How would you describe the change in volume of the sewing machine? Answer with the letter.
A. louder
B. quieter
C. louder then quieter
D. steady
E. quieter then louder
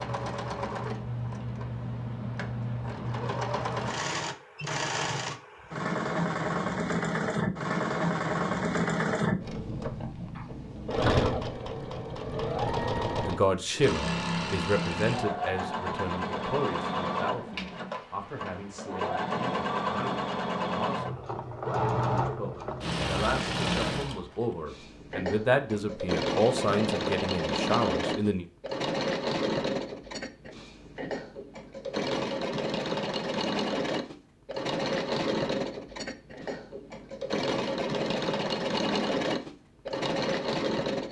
D.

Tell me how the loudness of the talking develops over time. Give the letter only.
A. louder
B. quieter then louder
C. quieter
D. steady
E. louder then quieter
B.